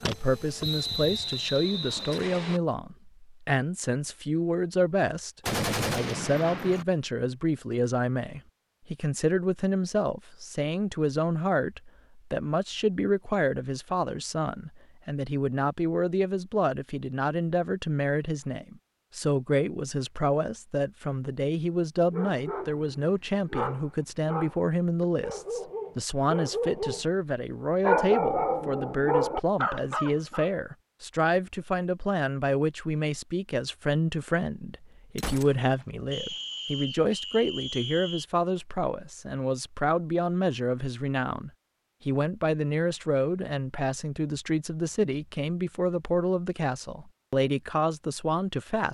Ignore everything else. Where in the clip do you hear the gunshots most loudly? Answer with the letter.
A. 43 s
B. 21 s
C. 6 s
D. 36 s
C.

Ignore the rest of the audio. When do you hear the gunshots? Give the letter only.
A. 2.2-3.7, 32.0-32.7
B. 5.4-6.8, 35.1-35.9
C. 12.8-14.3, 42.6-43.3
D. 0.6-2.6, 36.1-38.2
B.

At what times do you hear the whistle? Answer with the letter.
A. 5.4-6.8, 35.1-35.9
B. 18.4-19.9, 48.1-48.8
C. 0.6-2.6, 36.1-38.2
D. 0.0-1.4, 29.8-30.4
C.